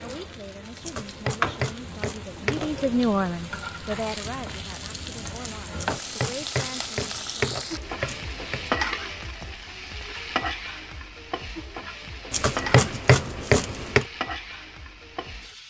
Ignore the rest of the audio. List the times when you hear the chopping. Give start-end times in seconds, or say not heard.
0.8-2.9, 5.8-8.7, 12.3-14.1.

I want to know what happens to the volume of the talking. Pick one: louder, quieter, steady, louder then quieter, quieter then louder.
louder then quieter.